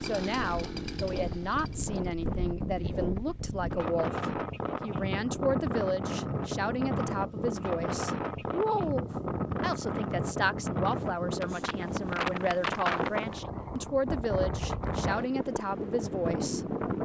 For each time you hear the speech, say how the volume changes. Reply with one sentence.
You can hear the speech from 0.0 to 16.6 s, at a steady volume.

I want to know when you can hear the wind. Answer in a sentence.
You can hear the wind from 0.0 to 16.9 s.